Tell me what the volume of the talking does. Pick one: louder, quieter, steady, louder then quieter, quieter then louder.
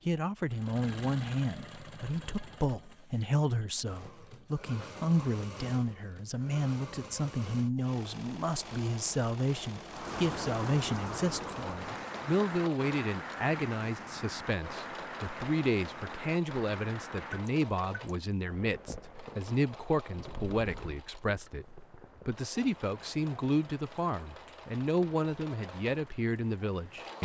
steady.